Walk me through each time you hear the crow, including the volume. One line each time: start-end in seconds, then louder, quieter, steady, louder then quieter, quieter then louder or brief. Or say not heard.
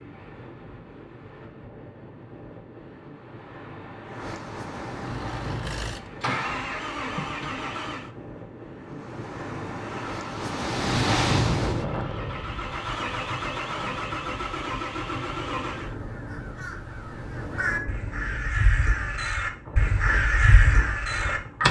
15.7-21.6 louder.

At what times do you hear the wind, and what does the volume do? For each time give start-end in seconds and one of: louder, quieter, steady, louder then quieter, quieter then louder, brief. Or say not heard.
0.0-21.6 louder then quieter.